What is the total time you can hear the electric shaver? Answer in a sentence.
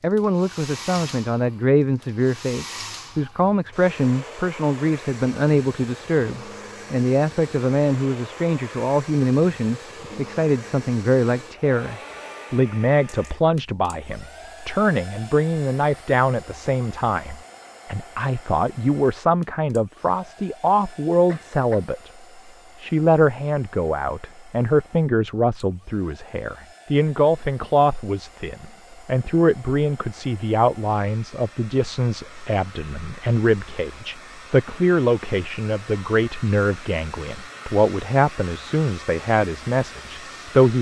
The electric shaver can't be heard in this clip.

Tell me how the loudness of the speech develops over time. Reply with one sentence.
The loudness of the speech stays about the same.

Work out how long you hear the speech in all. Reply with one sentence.
You can hear the speech for 40 seconds altogether.